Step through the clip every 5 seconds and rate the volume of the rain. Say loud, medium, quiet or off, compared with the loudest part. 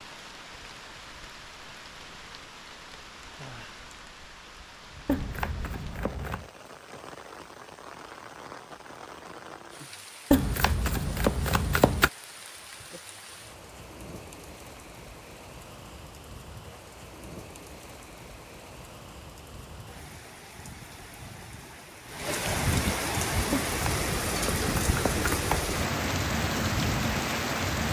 quiet, quiet, quiet, quiet, loud, loud.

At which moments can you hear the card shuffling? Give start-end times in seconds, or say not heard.
5.0-6.5, 10.3-12.1, 23.5-25.7.